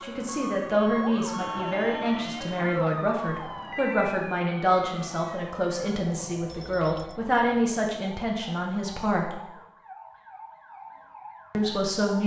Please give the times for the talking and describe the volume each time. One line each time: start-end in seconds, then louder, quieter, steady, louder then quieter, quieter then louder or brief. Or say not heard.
0.0-9.4 steady
11.5-12.2 brief.